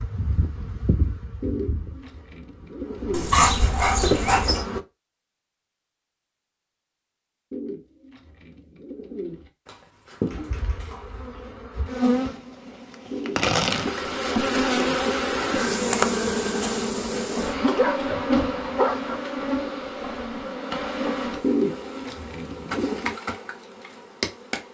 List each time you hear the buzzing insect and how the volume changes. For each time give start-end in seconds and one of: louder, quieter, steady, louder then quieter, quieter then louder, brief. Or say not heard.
0.0-4.8 quieter then louder
10.3-24.7 louder then quieter.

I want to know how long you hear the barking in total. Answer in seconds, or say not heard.
4 s.